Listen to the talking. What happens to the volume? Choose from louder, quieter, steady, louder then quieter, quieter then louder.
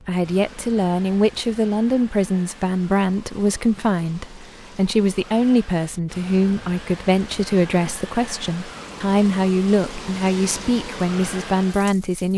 steady.